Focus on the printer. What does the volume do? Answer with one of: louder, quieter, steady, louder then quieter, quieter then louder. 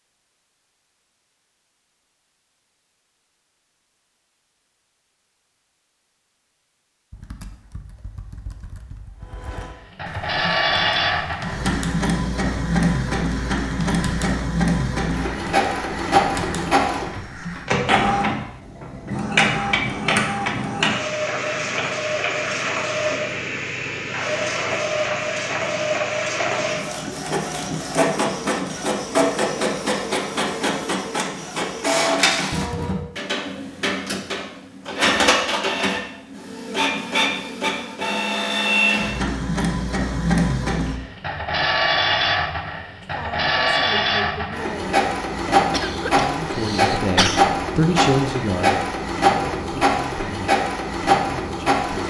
steady.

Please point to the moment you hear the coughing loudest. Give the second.
47 s.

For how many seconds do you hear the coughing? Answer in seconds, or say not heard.
2 s.